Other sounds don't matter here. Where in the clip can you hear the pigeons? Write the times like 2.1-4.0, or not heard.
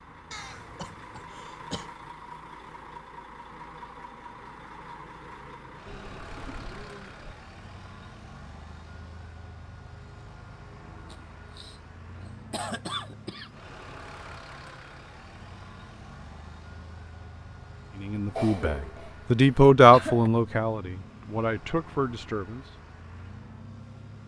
5.8-7.3.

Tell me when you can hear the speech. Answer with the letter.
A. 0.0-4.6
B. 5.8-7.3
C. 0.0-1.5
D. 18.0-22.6
D.